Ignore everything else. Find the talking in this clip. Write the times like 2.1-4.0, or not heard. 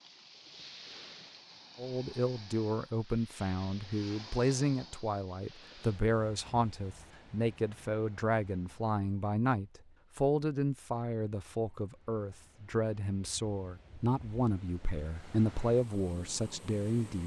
1.8-17.2.